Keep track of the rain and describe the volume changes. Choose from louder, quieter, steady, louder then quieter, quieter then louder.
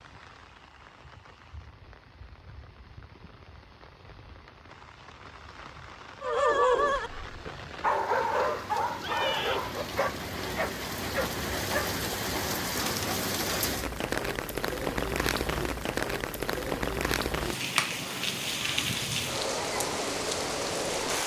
louder.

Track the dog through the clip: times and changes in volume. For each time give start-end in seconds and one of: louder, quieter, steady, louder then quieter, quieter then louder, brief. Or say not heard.
6.2-11.9 quieter.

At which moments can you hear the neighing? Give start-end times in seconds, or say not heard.
9.0-9.7.